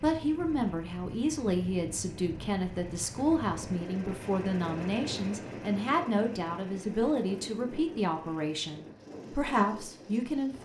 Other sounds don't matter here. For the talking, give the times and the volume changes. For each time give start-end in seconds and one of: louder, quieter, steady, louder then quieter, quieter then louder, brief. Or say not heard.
0.0-10.5 steady.